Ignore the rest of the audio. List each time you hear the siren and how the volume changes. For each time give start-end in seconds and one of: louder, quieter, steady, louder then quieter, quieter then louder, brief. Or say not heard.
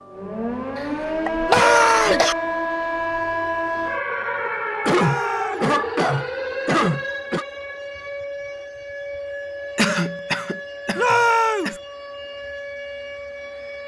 0.0-13.8 quieter.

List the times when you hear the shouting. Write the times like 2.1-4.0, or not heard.
1.4-2.3, 4.9-5.7, 10.9-11.8.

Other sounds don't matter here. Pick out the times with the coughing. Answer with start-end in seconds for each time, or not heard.
1.2-2.4, 4.8-7.5, 9.8-11.8.